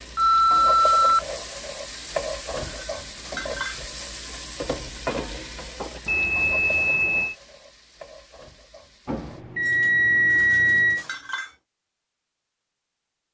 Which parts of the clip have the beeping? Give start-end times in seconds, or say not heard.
0.1-1.2, 6.0-7.3, 9.1-11.1.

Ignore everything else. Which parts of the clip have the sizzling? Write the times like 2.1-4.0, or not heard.
0.0-9.4.